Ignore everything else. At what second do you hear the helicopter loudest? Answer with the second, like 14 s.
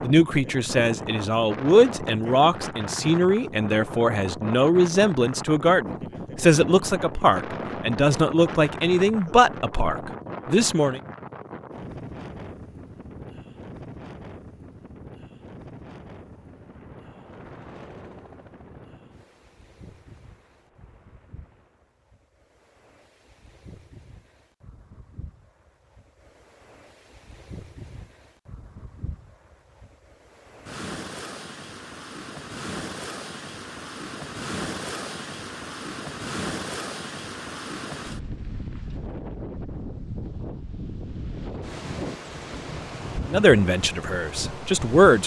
18 s.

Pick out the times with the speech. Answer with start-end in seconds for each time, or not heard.
0.0-11.0, 43.2-45.2.